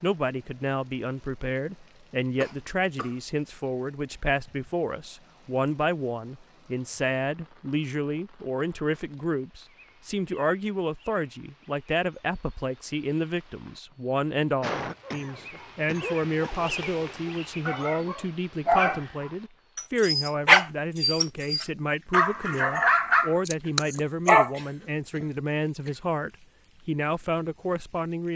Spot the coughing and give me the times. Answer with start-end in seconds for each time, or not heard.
2.4-3.1, 14.6-16.5, 23.6-26.0.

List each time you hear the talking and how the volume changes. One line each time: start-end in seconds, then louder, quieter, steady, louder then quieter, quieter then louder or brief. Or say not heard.
0.0-28.3 steady.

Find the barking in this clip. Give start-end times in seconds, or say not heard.
15.1-24.5.